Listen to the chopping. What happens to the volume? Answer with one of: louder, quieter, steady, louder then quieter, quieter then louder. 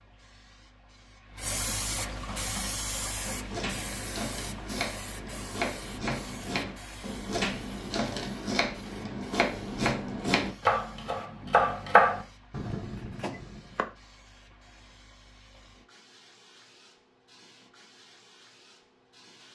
louder.